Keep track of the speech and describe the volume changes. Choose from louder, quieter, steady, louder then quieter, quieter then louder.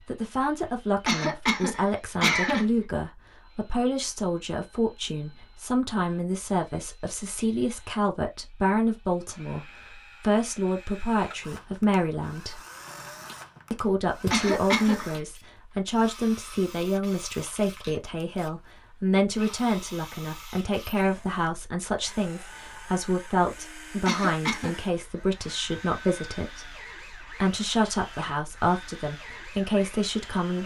steady.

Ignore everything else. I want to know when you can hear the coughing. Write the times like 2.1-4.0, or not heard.
1.1-2.6, 14.3-15.1, 24.1-24.8.